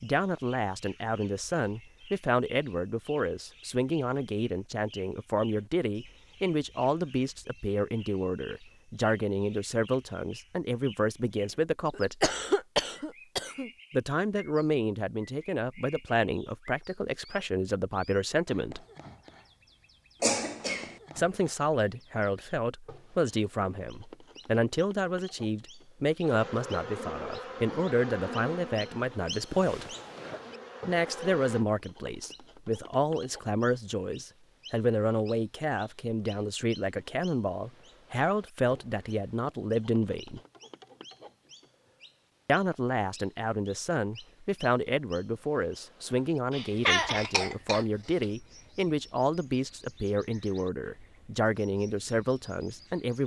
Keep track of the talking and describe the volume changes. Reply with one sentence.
The volume of the talking stays about the same.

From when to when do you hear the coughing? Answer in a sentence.
You can hear the coughing from 11.9 to 13.7 s, from 20.2 to 20.9 s and from 46.5 to 48.2 s.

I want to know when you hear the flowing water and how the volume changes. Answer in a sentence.
You can't hear the flowing water here.